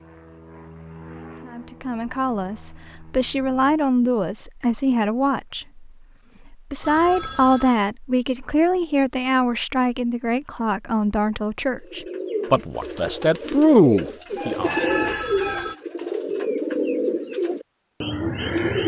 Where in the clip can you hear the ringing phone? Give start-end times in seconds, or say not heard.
6.8-7.8, 14.8-15.8.